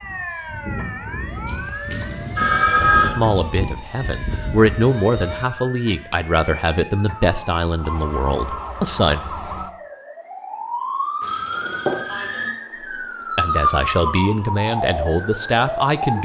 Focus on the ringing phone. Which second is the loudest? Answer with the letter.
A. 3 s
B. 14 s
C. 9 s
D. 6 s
A.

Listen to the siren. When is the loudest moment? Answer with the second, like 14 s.
14 s.